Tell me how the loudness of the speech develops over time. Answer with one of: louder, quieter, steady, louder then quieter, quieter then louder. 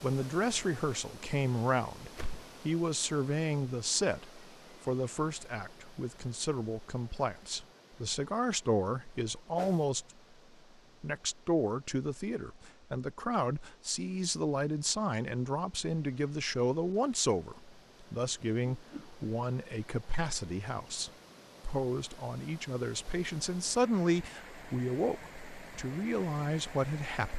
steady.